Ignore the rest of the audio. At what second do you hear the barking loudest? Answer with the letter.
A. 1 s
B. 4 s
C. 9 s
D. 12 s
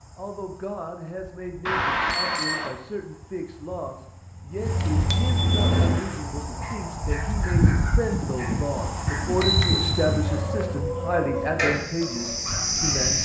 D.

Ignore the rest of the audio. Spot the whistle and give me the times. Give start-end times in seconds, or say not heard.
not heard.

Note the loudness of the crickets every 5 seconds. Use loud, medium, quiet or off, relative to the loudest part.
quiet, loud, loud.